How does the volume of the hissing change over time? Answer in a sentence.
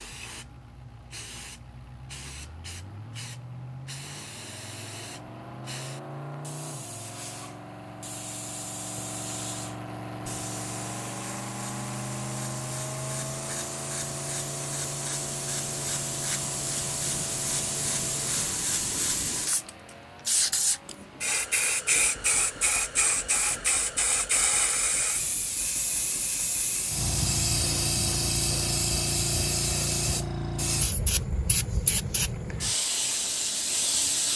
The volume of the hissing goes up.